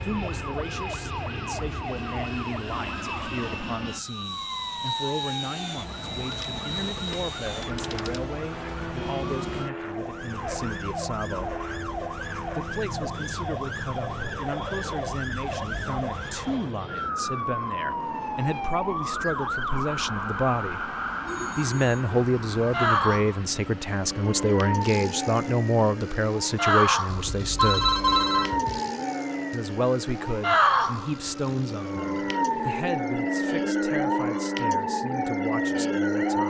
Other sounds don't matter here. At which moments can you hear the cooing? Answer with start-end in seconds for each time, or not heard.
not heard.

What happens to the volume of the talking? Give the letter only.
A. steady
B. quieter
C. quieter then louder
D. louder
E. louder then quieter
E.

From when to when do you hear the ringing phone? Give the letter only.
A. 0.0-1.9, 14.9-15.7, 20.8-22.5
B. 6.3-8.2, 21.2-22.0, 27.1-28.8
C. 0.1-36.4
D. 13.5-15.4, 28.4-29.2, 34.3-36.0
B.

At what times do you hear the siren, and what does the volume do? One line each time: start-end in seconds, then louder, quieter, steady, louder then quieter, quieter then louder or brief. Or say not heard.
0.1-36.4 louder.